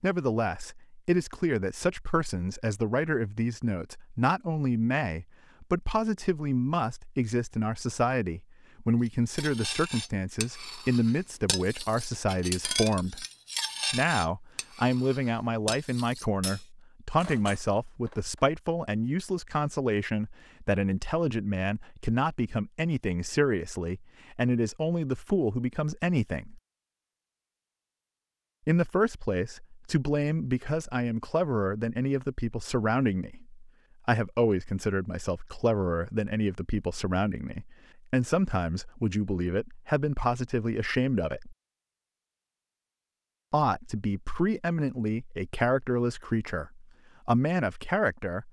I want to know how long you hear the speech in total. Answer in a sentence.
You can hear the speech for 44 seconds altogether.